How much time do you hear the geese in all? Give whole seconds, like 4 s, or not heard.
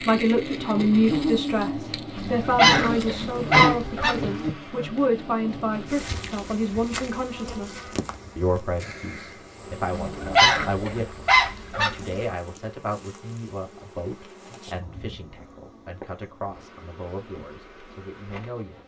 5 s.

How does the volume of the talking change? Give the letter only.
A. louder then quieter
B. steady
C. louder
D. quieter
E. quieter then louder
D.